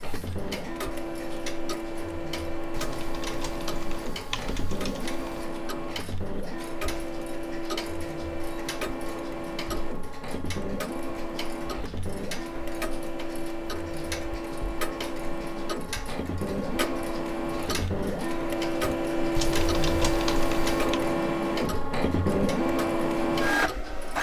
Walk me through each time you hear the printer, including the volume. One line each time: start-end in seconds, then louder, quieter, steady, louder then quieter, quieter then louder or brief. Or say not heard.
0.0-24.1 louder.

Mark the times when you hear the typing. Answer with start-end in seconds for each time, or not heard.
2.8-5.5, 19.4-21.0.